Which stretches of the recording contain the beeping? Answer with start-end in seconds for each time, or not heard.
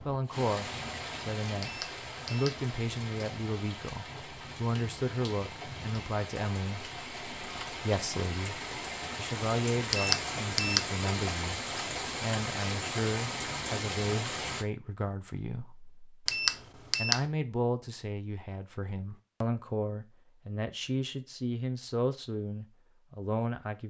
1.6-2.6, 9.9-10.9, 16.2-17.2.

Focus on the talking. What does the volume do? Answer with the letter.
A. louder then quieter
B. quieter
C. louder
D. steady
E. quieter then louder
D.